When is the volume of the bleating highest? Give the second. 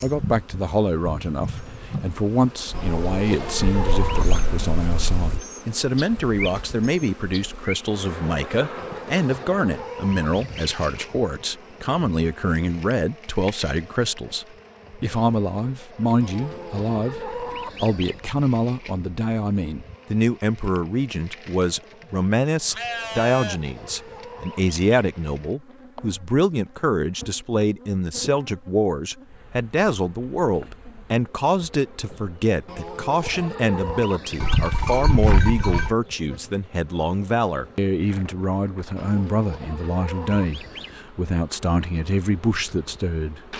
35 s.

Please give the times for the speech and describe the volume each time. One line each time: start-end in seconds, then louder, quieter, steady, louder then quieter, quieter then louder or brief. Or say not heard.
0.0-43.5 steady.